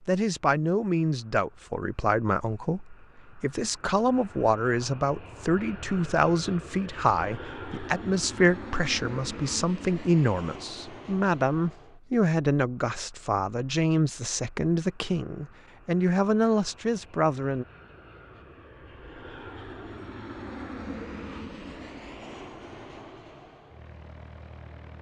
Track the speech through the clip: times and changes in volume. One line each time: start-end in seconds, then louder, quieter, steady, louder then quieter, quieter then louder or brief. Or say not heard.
0.1-17.6 steady.